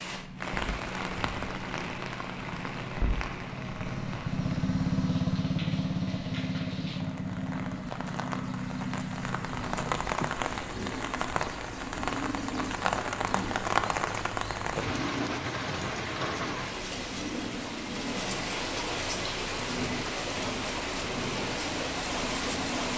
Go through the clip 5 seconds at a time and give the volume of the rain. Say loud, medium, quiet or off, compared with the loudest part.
medium, medium, loud, loud, loud.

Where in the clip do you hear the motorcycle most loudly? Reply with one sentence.
The volume of the motorcycle peaks at 5 seconds.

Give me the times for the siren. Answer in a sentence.
The siren can't be heard in this clip.